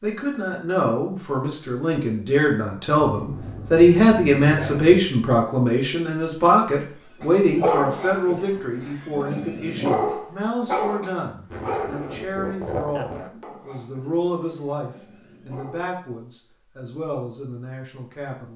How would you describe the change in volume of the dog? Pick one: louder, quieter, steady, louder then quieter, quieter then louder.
quieter.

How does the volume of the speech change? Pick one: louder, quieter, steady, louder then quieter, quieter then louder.
quieter.